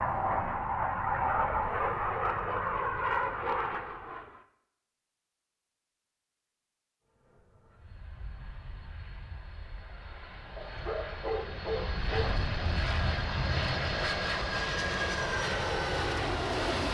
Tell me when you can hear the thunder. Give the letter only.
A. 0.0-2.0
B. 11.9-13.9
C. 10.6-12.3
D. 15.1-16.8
B.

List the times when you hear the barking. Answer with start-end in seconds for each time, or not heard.
10.6-12.3.